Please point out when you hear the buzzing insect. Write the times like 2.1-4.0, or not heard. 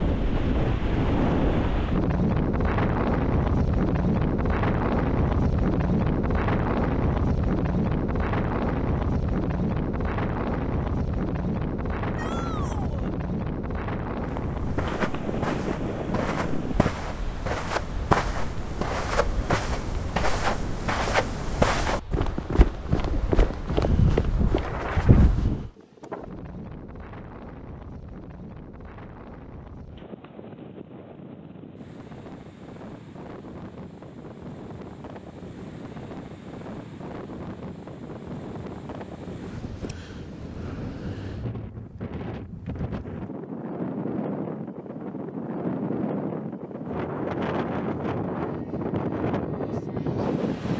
not heard.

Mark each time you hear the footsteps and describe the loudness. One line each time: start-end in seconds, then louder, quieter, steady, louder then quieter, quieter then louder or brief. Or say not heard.
14.2-25.7 louder.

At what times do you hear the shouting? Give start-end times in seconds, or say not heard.
12.2-13.1.